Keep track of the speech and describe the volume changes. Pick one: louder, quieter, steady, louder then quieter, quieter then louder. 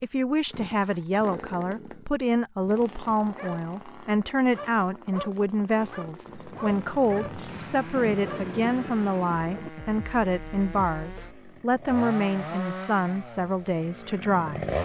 steady.